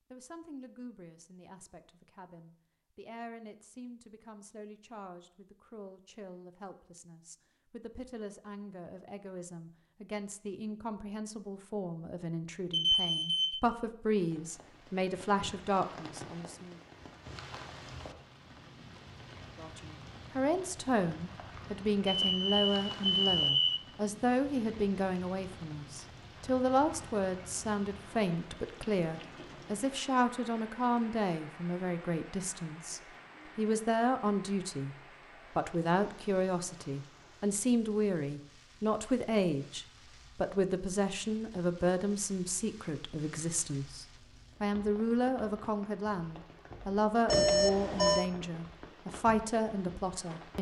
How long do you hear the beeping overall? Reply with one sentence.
You can hear the beeping for 4 seconds altogether.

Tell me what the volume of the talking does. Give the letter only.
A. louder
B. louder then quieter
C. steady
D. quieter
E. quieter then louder
A.